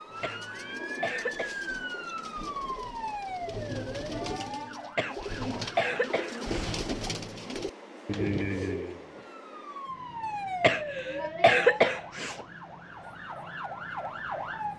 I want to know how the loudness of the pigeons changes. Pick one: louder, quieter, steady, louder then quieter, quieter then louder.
louder.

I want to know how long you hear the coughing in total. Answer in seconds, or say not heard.
5 s.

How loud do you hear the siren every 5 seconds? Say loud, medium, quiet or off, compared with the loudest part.
loud, medium, loud.